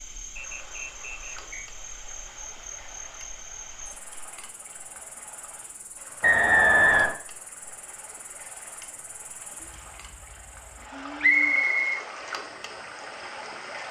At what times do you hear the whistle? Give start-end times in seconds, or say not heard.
0.3-1.7, 6.2-7.2, 11.2-12.1.